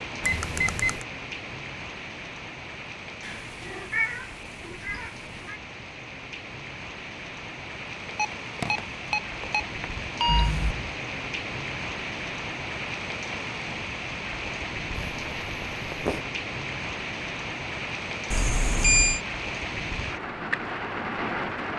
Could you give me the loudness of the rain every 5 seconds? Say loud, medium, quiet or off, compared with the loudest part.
medium, medium, loud, loud, loud.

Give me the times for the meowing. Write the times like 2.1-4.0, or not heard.
3.2-5.6, 10.2-10.9, 14.9-16.2.